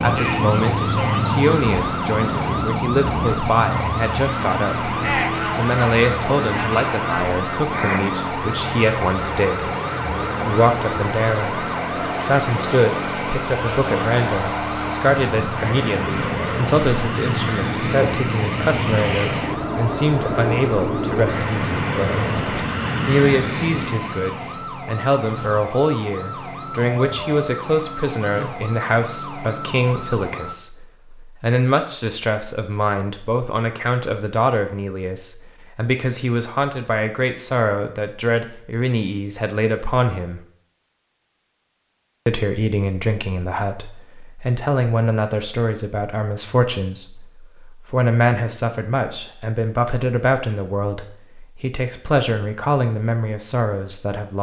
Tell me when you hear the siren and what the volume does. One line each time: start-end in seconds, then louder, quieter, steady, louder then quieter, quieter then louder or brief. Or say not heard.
0.0-30.6 quieter.